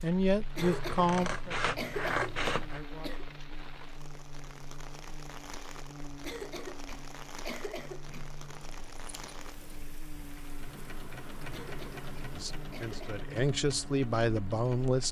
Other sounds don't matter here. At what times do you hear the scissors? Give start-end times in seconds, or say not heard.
0.6-2.9, 8.1-9.8.